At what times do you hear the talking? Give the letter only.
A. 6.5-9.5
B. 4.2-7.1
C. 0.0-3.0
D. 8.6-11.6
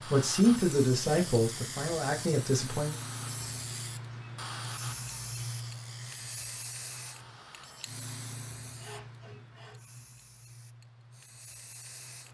C.